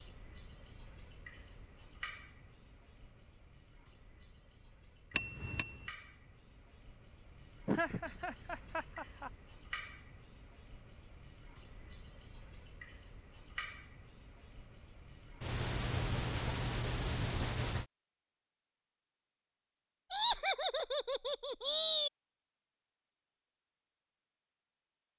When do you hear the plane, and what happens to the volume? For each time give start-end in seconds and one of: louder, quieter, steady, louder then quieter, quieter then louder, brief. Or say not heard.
not heard.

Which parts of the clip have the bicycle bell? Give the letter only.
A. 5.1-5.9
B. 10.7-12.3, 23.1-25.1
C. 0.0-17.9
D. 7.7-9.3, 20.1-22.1
A.